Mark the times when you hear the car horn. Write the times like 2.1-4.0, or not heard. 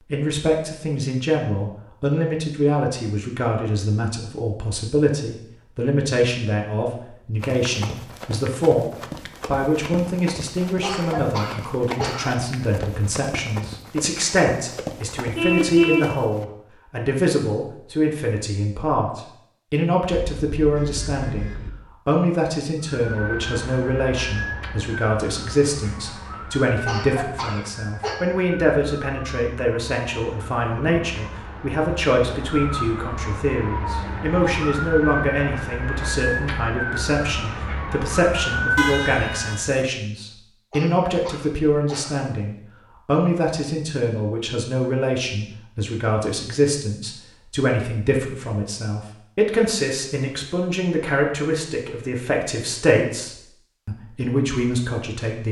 15.3-16.1, 20.1-21.7, 38.8-39.9.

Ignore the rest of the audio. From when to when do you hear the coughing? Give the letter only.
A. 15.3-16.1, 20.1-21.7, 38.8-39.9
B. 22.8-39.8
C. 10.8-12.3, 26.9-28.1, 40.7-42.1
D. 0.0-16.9
C.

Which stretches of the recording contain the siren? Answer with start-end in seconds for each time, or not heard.
22.8-39.8.